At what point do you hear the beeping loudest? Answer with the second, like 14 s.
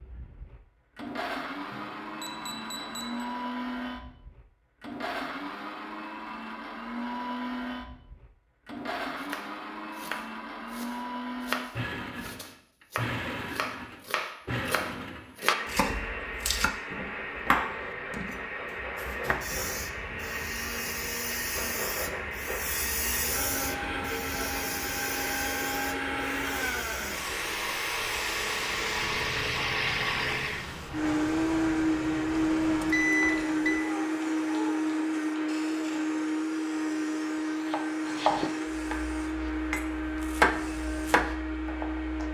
33 s.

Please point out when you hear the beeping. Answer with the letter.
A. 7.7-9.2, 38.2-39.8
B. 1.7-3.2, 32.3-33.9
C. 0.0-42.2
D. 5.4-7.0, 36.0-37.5
B.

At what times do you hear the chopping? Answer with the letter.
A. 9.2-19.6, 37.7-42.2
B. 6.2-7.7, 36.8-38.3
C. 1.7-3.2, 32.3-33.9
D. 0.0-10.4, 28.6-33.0
A.